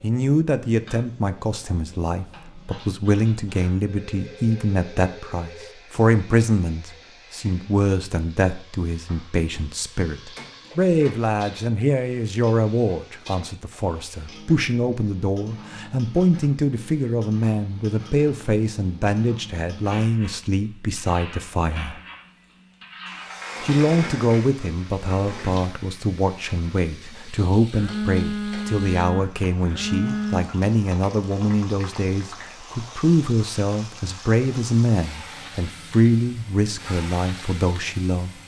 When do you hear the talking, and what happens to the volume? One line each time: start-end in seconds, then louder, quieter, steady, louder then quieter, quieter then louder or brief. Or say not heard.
0.0-22.0 steady
23.6-38.4 steady.